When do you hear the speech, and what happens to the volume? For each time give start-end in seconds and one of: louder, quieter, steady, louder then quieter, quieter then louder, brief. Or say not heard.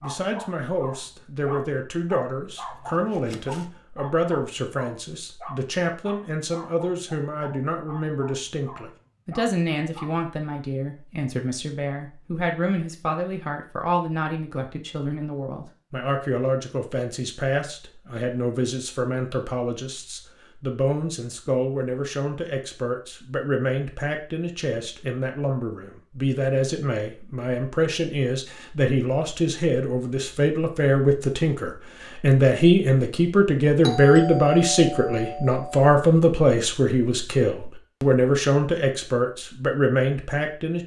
0.0-40.8 louder.